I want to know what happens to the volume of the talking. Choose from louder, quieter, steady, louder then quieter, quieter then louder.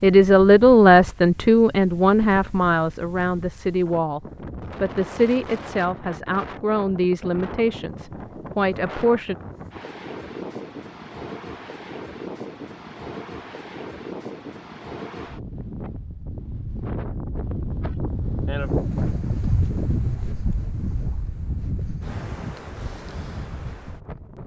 quieter.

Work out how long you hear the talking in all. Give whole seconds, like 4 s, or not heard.
9 s.